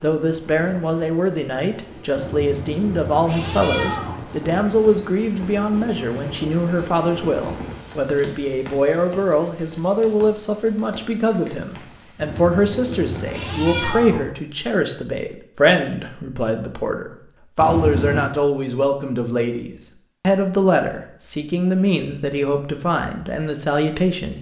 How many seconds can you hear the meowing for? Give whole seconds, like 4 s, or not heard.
5 s.